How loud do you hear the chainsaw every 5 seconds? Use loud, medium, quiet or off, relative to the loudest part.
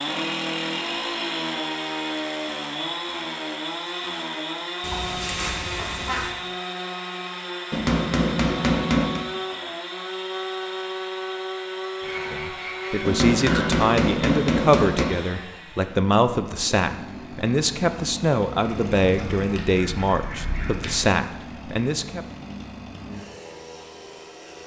loud, loud, loud, medium, medium.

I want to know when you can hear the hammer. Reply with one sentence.
You can hear the hammer from 7.7 to 9.2 s and from 13.1 to 15.1 s.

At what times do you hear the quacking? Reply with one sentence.
The quacking can be heard from 4.8 to 6.3 s, from 12.0 to 13.7 s and from 18.6 to 21.1 s.